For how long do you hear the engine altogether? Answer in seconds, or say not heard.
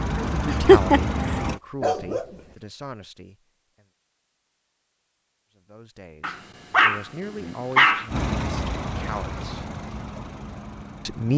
5 s.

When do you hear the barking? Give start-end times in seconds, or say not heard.
0.5-2.2, 6.2-8.1.